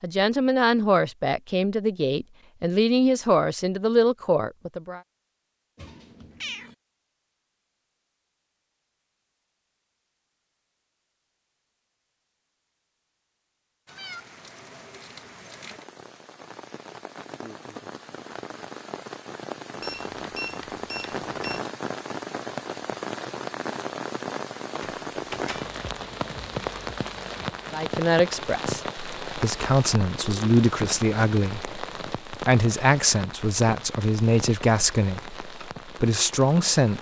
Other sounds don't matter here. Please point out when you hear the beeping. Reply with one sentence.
The beeping can be heard from 19.8 to 21.6 s.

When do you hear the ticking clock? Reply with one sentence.
You can't hear the ticking clock here.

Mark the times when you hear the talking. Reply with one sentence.
You can hear the talking from 0.0 to 5.0 s and from 27.7 to 36.9 s.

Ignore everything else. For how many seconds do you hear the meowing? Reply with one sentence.
The meowing can be heard for 2 seconds in total.